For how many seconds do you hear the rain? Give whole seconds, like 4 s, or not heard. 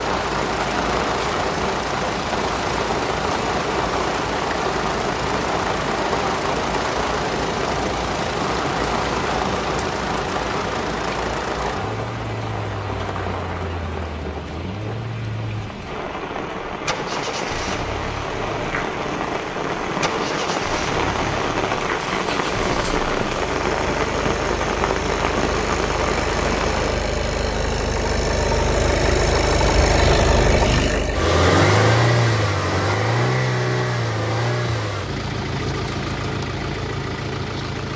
27 s.